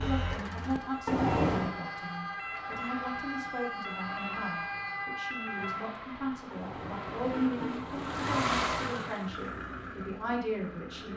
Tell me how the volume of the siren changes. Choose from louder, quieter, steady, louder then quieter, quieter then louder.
louder.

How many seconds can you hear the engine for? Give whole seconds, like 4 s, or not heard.
11 s.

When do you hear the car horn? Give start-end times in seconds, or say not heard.
1.1-1.7, 6.5-8.6.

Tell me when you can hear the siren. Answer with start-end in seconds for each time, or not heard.
0.0-6.0.